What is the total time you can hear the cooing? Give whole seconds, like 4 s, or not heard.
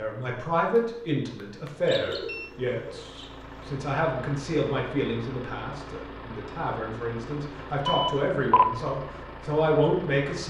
2 s.